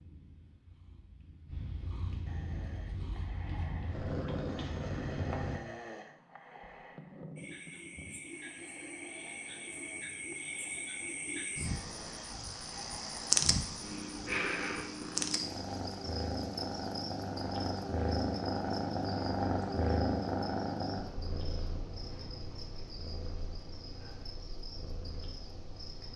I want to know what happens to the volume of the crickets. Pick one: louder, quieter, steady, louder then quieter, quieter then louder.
louder then quieter.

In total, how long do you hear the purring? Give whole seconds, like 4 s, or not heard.
18 s.